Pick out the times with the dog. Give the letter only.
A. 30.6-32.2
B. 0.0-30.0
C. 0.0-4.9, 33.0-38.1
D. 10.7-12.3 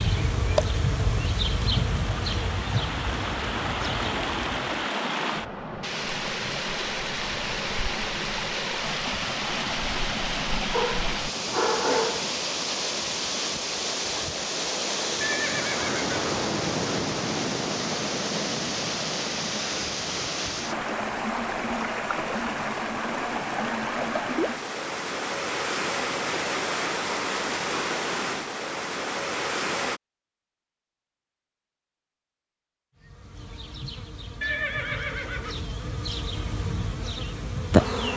D.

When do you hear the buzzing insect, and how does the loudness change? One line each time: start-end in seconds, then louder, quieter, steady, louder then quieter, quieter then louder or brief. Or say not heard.
0.0-4.9 quieter
33.0-38.1 louder.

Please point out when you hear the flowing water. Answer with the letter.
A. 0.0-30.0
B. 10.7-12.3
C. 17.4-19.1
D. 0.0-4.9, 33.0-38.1
A.